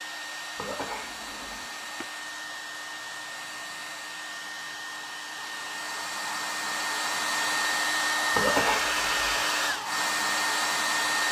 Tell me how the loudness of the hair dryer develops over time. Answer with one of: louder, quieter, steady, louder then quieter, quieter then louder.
louder.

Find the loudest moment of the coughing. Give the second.
9 s.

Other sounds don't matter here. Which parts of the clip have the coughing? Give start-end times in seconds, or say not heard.
0.6-1.6, 8.3-9.4.